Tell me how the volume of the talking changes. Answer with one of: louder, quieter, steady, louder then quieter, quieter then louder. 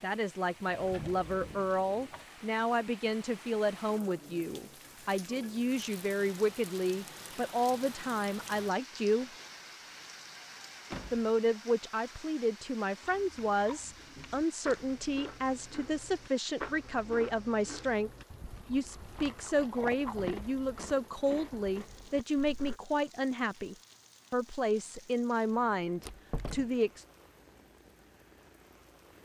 steady.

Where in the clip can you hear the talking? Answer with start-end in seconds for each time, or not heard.
0.0-9.3, 11.1-27.1.